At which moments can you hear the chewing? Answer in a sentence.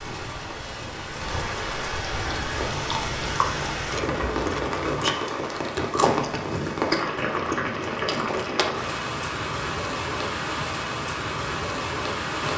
You can hear the chewing from 2.1 to 8.8 s.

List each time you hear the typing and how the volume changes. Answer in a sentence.
The typing can't be heard in this clip.